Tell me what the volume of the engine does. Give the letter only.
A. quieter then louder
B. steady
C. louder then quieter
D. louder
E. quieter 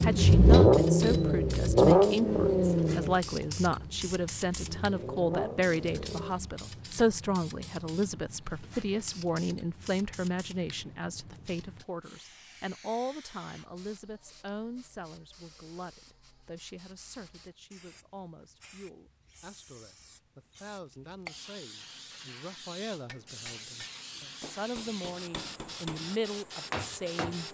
A.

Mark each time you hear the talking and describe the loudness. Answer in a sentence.
The talking can be heard from 0.0 to 27.4 s, getting quieter then louder.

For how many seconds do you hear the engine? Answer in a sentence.
The engine can be heard for 6 seconds in total.